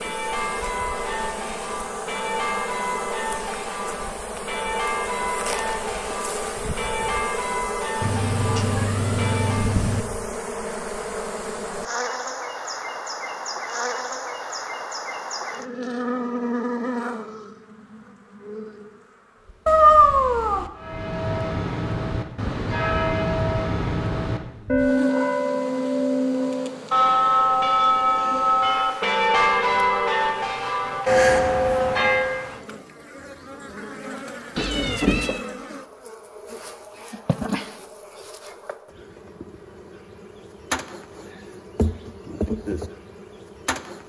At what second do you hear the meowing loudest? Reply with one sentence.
The volume of the meowing peaks at 20 seconds.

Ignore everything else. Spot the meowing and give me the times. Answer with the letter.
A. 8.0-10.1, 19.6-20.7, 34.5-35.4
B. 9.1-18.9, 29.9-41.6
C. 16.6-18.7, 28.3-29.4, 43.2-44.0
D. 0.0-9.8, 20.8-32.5
A.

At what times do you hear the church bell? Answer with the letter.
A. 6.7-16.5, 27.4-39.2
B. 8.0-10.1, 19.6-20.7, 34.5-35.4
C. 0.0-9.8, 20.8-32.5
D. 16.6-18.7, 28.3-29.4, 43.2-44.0
C.